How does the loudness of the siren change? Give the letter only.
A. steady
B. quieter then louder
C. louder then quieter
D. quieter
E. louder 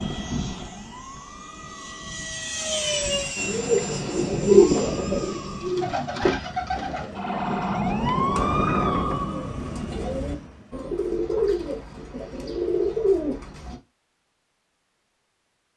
E.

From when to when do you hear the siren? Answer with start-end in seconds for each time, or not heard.
0.0-10.9.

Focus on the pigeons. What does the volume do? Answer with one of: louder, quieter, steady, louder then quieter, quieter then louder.
quieter then louder.